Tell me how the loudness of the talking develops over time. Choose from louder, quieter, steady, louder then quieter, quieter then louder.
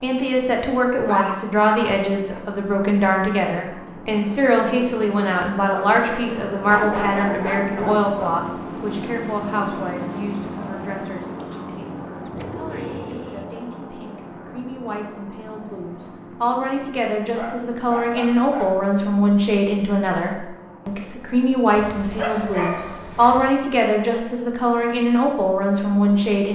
quieter then louder.